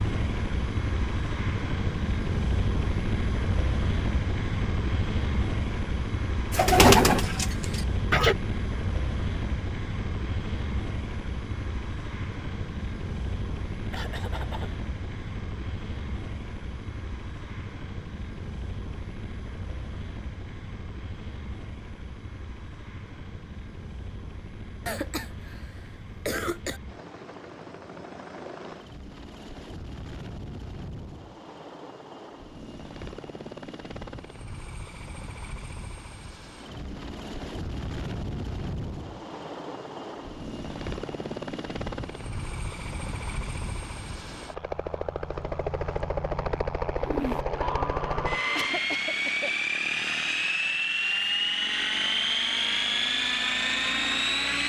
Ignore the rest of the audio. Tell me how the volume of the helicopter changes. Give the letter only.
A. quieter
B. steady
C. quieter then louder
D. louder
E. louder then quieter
C.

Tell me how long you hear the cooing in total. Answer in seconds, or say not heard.
4 s.